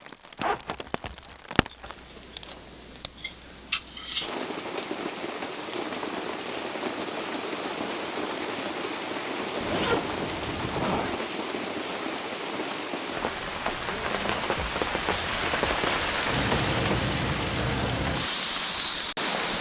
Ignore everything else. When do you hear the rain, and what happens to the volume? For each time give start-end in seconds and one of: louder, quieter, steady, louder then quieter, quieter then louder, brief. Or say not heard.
0.0-19.5 louder.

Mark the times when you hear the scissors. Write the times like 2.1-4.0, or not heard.
1.7-4.3.